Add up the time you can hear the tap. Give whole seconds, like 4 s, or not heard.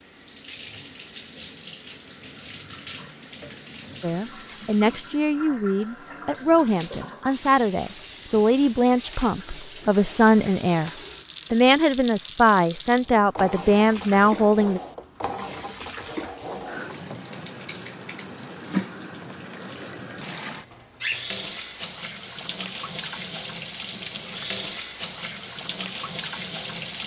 27 s.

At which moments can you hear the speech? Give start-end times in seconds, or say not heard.
4.0-10.9, 11.5-14.8.